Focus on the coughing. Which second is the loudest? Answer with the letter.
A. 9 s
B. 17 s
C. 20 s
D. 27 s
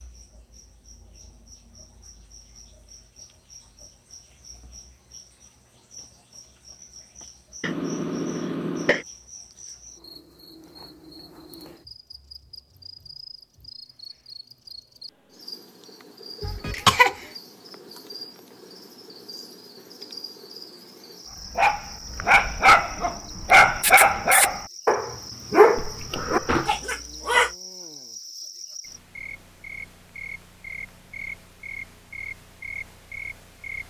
B.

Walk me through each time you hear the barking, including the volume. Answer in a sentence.
The barking can be heard from 21.5 to 27.6 s, getting quieter.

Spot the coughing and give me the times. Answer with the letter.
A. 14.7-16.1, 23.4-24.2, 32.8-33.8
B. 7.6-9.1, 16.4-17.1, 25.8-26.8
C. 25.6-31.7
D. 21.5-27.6
B.